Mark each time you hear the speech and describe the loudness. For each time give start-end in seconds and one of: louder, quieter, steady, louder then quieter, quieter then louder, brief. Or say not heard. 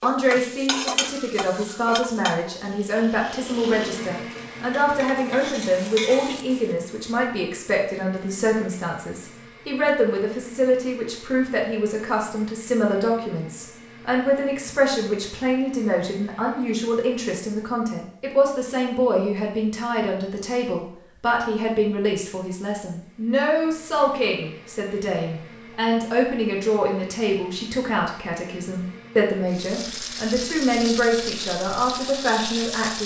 0.0-33.0 steady.